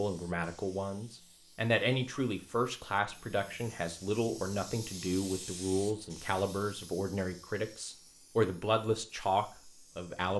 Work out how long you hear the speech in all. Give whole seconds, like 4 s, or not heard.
10 s.